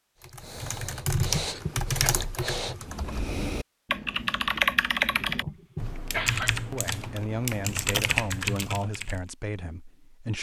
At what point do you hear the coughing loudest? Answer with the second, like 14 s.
6 s.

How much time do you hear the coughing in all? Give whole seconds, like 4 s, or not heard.
2 s.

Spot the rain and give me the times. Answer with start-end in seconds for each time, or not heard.
not heard.